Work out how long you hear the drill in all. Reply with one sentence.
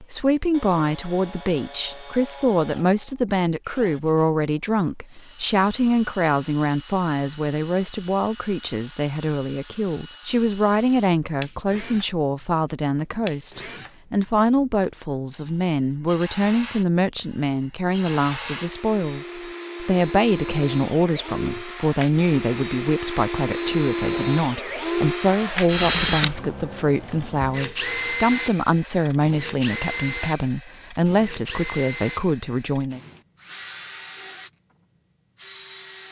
You can hear the drill for 36 seconds altogether.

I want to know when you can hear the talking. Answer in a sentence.
The talking can be heard from 0.0 to 33.0 s.